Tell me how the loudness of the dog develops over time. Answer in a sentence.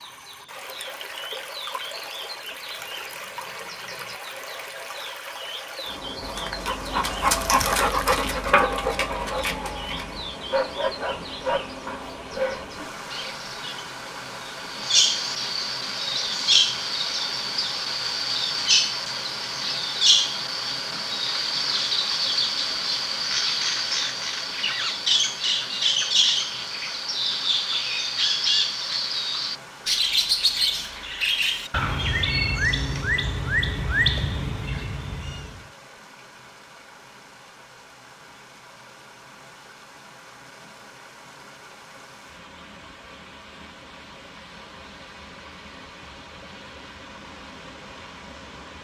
The volume of the dog goes down.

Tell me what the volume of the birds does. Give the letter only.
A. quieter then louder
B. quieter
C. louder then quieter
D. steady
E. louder
E.